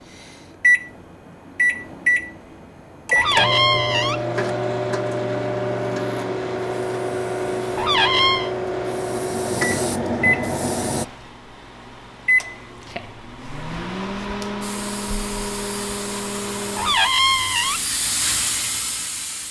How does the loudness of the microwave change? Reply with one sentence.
The volume of the microwave goes down.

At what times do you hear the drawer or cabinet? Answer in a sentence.
You can hear the drawer or cabinet from 3.1 to 4.2 s, from 7.8 to 8.5 s and from 16.8 to 17.9 s.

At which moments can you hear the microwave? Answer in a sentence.
You can hear the microwave from 0.1 to 17.0 s.